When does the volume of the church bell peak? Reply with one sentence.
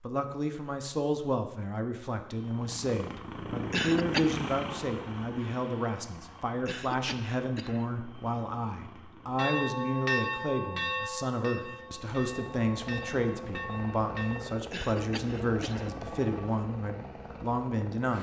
The loudest moment of the church bell is at 10 seconds.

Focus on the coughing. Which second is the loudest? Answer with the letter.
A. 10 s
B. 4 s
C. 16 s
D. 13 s
B.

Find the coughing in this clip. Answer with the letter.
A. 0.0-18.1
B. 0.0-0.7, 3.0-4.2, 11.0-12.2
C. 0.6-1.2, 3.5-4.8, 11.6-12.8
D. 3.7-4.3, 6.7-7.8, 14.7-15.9
D.